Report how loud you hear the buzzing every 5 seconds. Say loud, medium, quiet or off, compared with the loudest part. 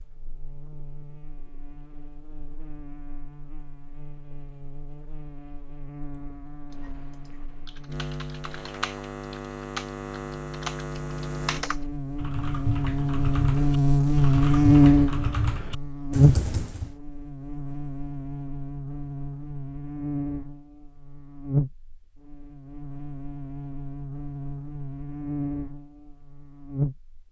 quiet, quiet, loud, medium, medium, medium.